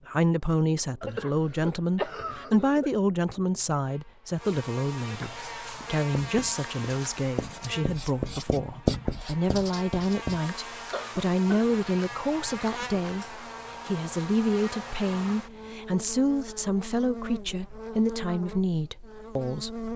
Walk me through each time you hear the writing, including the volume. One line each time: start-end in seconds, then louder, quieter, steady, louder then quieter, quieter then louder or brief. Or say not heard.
5.8-10.4 louder then quieter.